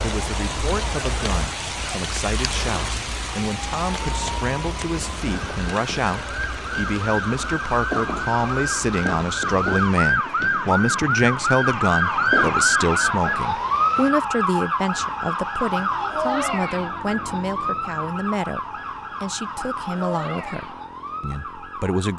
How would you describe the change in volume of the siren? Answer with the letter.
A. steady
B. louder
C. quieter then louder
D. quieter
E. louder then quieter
E.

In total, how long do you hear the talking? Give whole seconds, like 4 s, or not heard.
22 s.